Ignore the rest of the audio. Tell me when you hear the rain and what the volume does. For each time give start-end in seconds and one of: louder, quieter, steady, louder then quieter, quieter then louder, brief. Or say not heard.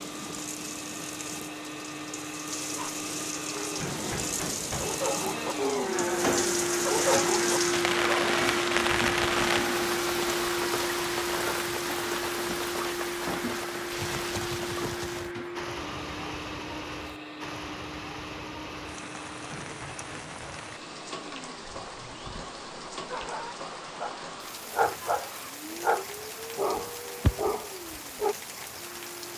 0.0-29.3 louder then quieter.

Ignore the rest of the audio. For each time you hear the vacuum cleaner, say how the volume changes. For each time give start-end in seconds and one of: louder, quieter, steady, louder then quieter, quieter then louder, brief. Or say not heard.
0.0-29.3 louder then quieter.